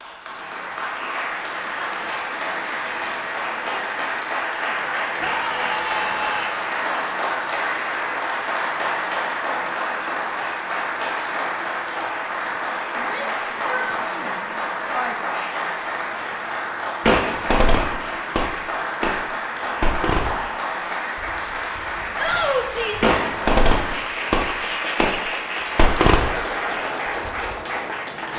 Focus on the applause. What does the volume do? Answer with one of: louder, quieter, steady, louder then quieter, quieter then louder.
steady.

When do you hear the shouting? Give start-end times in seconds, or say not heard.
5.2-6.5, 12.9-15.3, 22.1-23.1.